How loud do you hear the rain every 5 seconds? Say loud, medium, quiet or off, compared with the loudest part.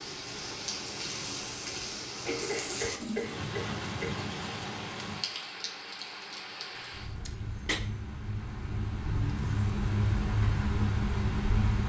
medium, medium, loud.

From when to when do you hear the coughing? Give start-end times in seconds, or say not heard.
2.2-4.2, 6.7-7.8.